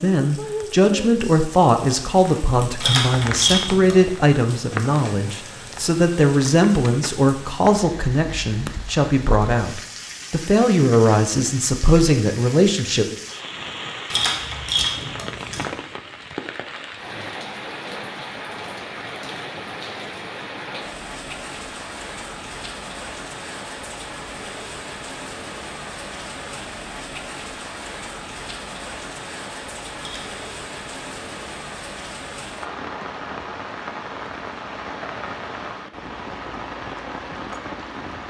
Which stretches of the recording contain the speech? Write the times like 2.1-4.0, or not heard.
0.0-13.1.